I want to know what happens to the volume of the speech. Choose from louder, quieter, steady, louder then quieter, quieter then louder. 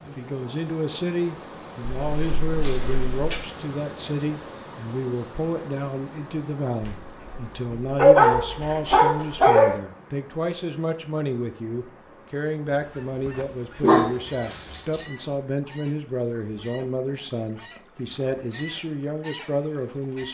steady.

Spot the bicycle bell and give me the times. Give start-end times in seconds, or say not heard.
not heard.